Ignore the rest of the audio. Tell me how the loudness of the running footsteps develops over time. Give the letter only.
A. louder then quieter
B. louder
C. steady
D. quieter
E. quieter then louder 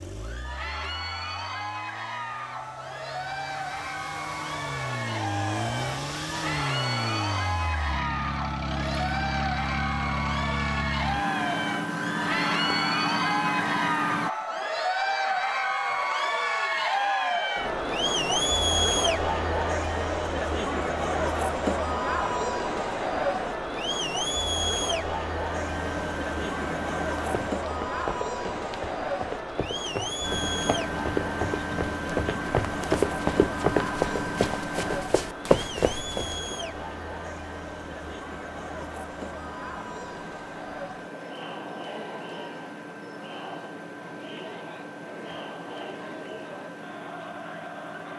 B.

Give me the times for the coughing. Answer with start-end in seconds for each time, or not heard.
not heard.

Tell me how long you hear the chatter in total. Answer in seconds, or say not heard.
48 s.